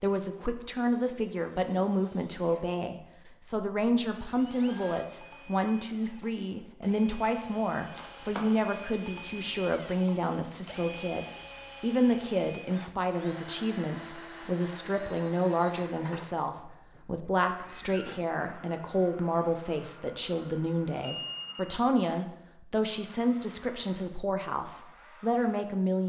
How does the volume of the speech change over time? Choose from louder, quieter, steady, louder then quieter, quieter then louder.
steady.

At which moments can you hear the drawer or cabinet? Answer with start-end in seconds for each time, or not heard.
not heard.